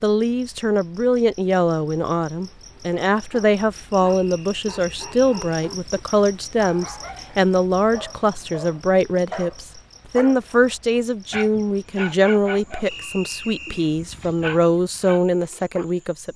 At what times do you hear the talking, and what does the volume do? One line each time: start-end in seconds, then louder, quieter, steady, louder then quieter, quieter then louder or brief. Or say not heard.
0.0-16.3 steady.